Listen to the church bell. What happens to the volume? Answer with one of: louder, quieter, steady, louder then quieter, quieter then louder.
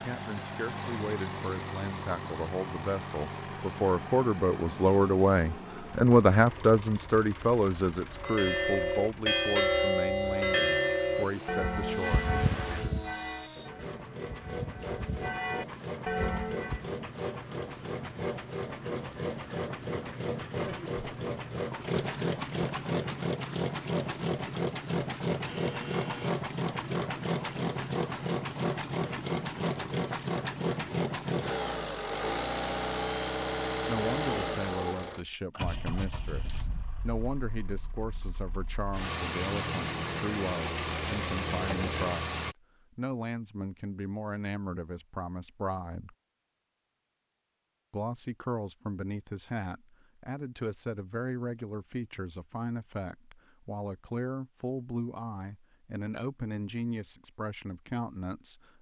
quieter then louder.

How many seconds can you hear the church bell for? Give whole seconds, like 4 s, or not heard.
9 s.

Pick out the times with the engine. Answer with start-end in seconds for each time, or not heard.
0.0-42.5.